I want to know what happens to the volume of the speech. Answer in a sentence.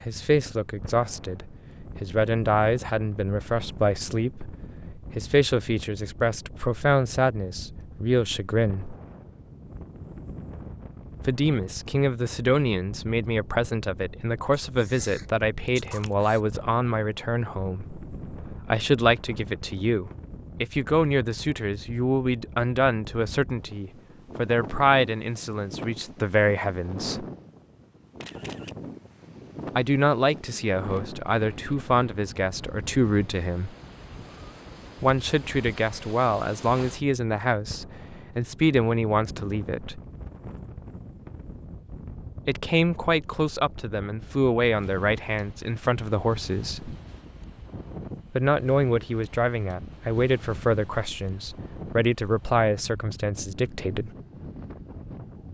The loudness of the speech stays about the same.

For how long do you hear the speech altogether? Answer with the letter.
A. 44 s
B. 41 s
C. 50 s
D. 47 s
A.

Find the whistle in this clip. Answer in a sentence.
The whistle can't be heard in this clip.